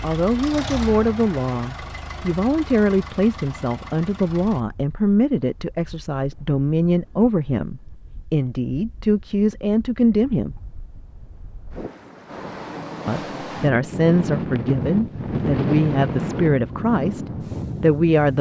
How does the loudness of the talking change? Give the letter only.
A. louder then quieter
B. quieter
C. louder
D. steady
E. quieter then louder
D.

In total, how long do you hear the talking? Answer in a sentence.
The talking can be heard for 16 seconds in total.